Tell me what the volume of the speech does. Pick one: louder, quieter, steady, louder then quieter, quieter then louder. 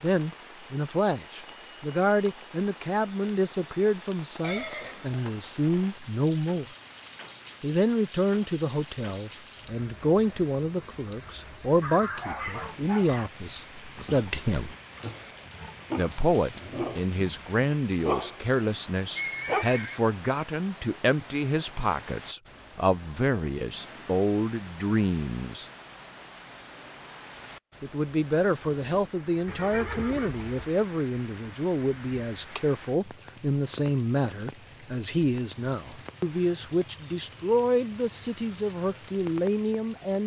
steady.